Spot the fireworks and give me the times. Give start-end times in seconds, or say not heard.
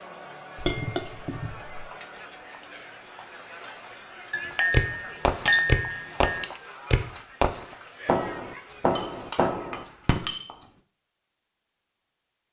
4.7-10.3.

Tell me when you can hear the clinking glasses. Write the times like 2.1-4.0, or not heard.
0.6-1.9, 4.3-6.5, 8.7-10.7.